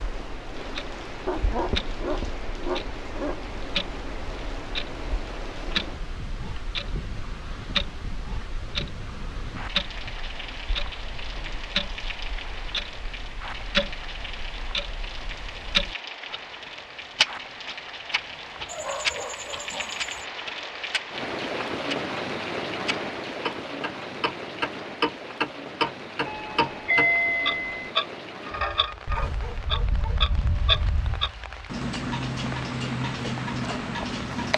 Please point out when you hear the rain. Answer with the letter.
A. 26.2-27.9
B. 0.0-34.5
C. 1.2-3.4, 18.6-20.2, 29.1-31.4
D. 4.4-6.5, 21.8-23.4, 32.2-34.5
B.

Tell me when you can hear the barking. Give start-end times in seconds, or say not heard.
1.2-3.4, 18.6-20.2, 29.1-31.4.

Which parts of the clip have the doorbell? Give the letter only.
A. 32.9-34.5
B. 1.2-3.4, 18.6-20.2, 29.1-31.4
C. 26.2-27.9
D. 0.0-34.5
C.